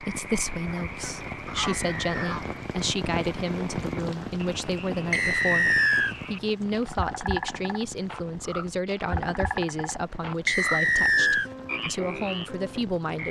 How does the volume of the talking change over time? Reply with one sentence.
The loudness of the talking stays about the same.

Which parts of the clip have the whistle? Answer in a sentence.
The whistle can be heard from 1.6 to 2.2 s, from 5.1 to 6.2 s and from 10.4 to 11.5 s.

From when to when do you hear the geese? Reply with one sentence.
You can hear the geese from 0.7 to 2.5 s.